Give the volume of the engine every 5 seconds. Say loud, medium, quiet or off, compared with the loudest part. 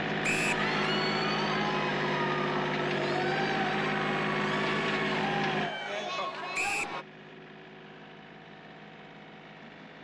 loud, medium.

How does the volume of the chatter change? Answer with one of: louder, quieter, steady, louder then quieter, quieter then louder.
steady.